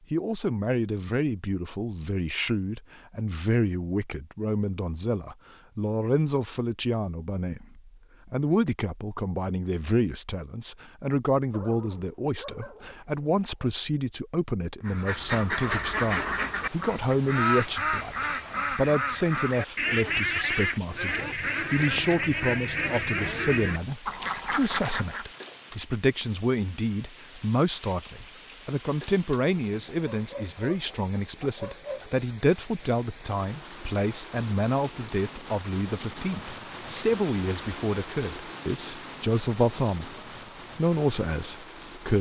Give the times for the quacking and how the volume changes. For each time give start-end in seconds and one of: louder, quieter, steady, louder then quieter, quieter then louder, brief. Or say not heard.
14.8-25.4 steady.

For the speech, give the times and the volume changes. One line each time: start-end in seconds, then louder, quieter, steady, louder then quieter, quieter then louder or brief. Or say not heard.
0.1-40.1 steady
40.8-42.1 brief.